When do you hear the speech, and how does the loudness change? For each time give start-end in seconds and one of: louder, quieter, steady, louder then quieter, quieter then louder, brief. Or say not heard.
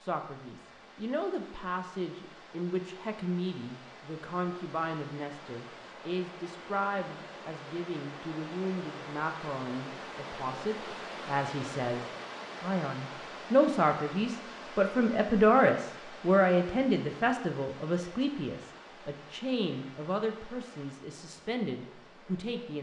0.0-22.7 louder then quieter.